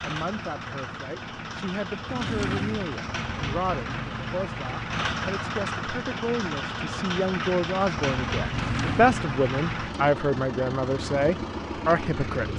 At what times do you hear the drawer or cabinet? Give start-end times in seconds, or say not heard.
2.0-3.0, 8.4-9.2.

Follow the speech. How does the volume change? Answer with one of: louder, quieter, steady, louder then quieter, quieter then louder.
louder.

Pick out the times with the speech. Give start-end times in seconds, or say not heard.
0.0-12.5.